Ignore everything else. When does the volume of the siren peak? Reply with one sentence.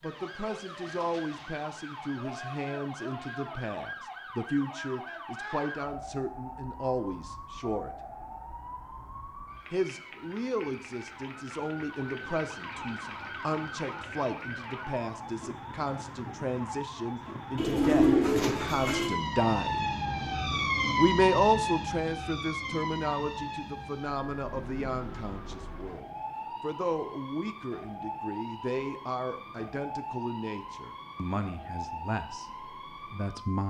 The volume of the siren peaks at 21 seconds.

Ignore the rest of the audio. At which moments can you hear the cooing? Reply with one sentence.
You can hear the cooing from 17.6 to 19.1 s.